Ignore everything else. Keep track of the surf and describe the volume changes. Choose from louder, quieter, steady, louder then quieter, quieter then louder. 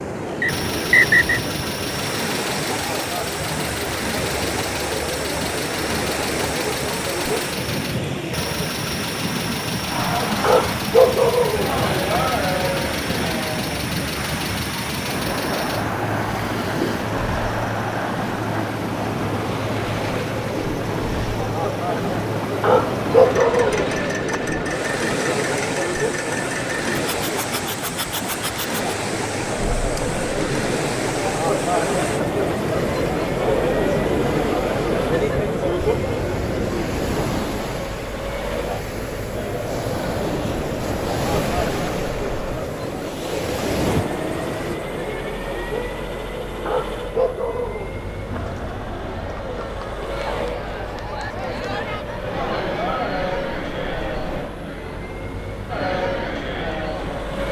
steady.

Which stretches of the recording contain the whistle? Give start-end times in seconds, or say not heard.
0.4-1.4.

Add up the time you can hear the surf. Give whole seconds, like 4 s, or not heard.
45 s.